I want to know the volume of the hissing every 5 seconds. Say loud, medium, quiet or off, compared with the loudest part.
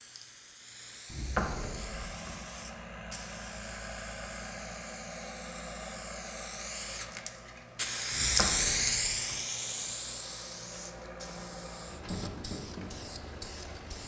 quiet, loud, quiet.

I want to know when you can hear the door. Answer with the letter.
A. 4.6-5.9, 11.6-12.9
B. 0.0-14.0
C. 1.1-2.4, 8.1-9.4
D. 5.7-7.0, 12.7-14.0
C.